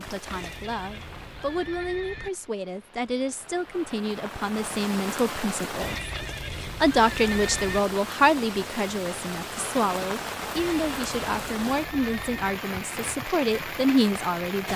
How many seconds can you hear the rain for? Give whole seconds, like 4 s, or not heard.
15 s.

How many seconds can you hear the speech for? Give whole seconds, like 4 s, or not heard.
15 s.